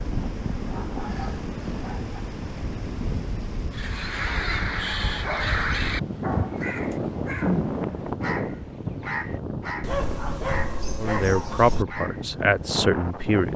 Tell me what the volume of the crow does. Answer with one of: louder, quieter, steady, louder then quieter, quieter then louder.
quieter.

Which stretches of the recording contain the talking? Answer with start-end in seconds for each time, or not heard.
10.9-13.5.